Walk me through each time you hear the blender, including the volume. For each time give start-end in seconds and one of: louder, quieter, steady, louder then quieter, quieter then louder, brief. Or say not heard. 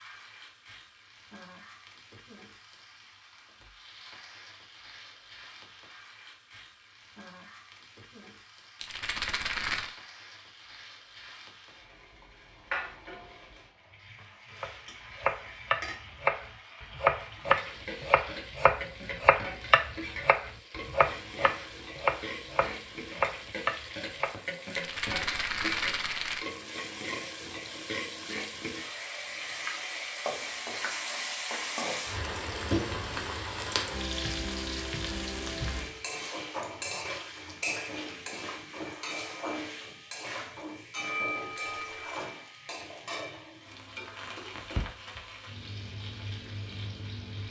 not heard.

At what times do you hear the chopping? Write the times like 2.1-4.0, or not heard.
14.6-24.7.